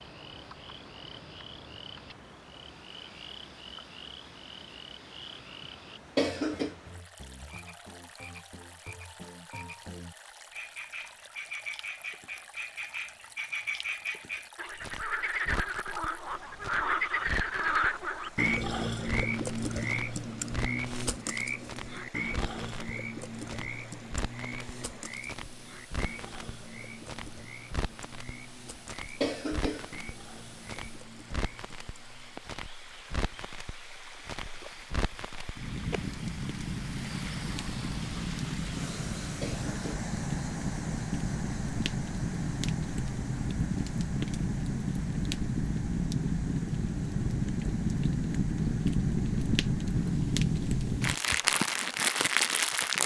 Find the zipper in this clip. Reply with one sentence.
The zipper can't be heard in this clip.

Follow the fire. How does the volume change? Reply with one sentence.
The volume of the fire goes up.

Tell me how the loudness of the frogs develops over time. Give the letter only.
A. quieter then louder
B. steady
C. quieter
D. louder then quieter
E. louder
D.